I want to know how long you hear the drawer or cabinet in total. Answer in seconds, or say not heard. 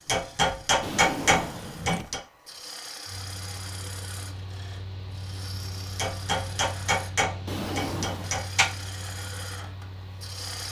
2 s.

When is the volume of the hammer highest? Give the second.
1 s.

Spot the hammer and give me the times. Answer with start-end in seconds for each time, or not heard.
0.1-2.2, 6.0-8.7.